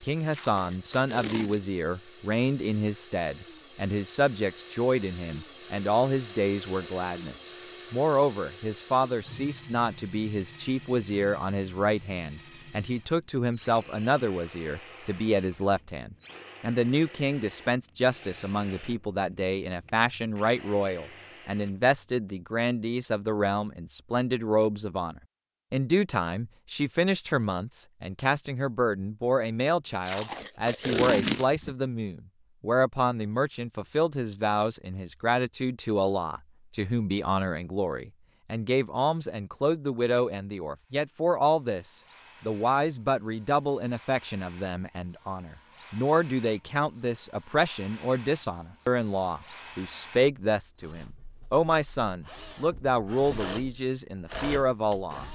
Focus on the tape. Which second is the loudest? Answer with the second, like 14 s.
31 s.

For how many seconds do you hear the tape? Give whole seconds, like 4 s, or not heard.
3 s.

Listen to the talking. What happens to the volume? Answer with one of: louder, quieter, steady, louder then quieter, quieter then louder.
steady.